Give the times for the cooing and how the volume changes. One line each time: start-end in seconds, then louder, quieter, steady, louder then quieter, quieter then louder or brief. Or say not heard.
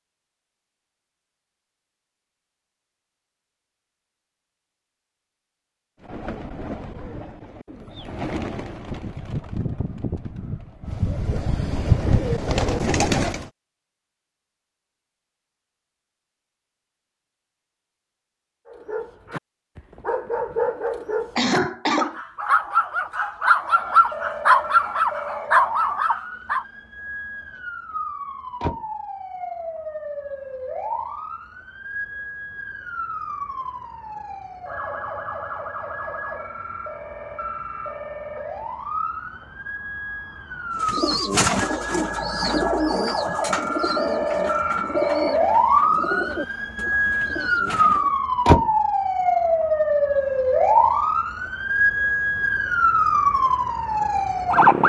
6.0-13.5 louder
40.8-48.1 quieter.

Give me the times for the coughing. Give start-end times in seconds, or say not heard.
21.4-22.2.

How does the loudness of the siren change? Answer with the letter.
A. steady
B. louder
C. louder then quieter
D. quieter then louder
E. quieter
B.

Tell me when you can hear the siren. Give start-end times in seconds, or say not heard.
23.6-54.8.